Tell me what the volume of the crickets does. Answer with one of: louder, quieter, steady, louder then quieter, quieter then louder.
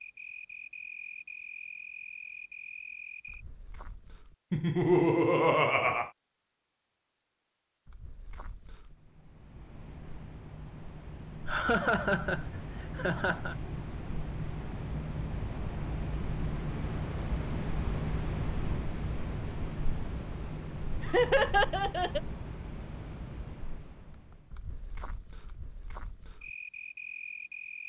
louder then quieter.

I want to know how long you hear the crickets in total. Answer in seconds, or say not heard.
28 s.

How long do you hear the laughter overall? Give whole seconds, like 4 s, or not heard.
5 s.